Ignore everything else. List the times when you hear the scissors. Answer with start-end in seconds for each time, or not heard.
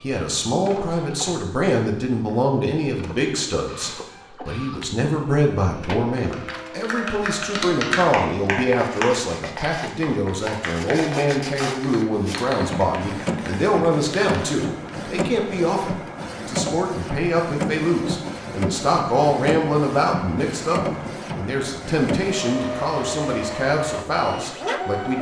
not heard.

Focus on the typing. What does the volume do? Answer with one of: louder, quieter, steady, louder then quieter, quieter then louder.
quieter.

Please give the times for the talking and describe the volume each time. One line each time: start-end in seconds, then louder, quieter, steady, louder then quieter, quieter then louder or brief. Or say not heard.
0.0-25.1 steady.